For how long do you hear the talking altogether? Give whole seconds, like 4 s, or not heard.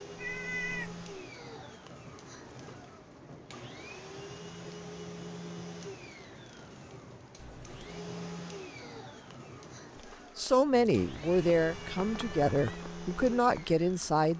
4 s.